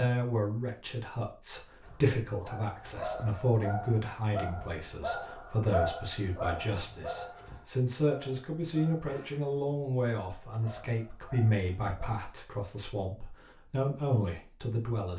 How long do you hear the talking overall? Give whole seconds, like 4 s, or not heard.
15 s.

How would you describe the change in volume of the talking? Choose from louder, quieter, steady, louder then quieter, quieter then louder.
steady.